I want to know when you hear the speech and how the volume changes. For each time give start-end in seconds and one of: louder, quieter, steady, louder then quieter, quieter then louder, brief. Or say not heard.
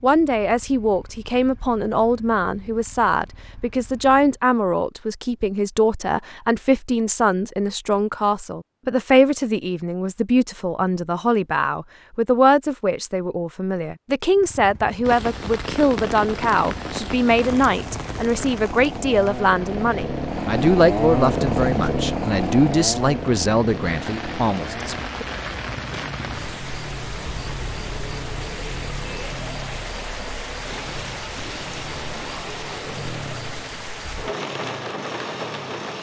0.0-25.2 steady.